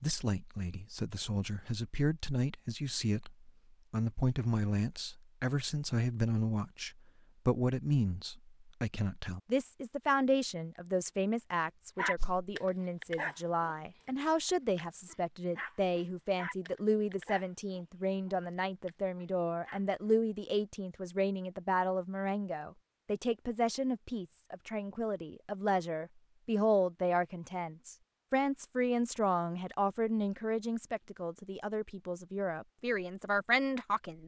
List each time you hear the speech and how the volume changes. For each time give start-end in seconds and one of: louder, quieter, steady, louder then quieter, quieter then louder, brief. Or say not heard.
0.0-34.2 steady.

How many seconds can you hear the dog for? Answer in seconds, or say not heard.
8 s.